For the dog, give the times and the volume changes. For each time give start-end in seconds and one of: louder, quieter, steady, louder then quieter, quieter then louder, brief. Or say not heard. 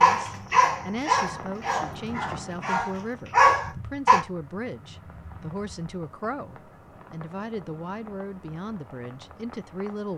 0.0-4.2 quieter then louder.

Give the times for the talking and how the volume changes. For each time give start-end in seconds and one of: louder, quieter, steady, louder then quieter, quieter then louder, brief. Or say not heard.
0.0-10.1 steady.